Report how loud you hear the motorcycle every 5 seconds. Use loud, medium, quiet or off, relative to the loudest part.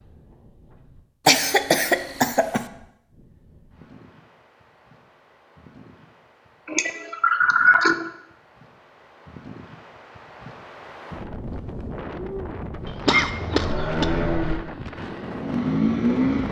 off, off, medium, loud.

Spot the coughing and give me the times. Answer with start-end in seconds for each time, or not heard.
1.2-2.6, 6.7-8.1, 13.1-14.1.